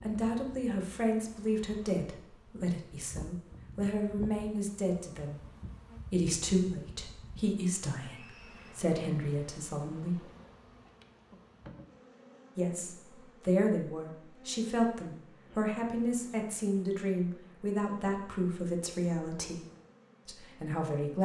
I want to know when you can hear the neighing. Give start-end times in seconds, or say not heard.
8.0-8.8.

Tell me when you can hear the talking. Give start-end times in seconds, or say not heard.
0.0-5.4, 6.1-10.2, 12.6-19.6, 20.2-21.1.